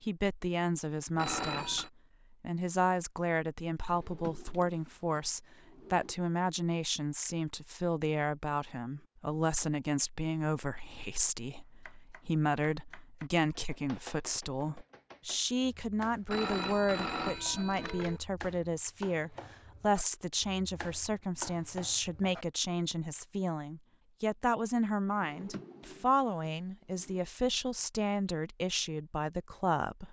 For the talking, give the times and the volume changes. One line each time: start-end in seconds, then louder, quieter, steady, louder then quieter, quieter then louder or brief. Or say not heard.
0.0-30.0 steady.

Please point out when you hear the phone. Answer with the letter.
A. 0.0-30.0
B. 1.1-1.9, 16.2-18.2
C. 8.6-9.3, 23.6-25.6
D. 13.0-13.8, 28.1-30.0
B.